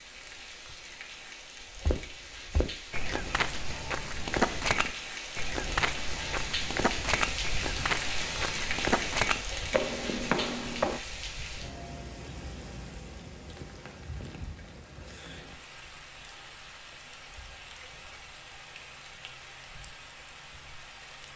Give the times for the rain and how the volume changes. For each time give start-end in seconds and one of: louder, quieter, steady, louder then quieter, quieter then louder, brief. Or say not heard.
0.0-21.3 louder then quieter.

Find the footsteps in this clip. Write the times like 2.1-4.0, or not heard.
1.9-11.0.